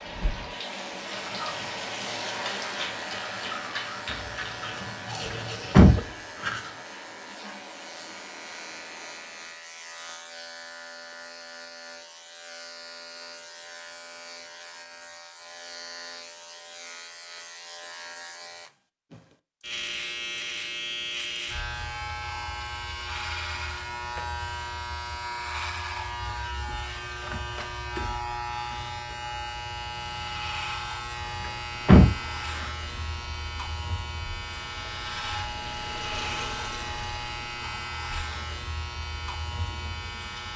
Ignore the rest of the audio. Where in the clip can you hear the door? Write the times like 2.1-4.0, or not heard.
5.3-6.5, 31.4-32.6.